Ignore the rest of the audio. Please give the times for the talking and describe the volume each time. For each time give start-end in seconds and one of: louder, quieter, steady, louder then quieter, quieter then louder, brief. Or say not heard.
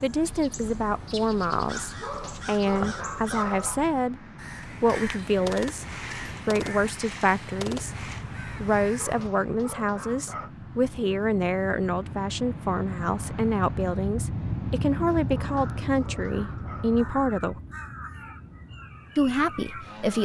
0.0-4.2 quieter then louder
4.8-17.6 steady
19.1-20.1 brief.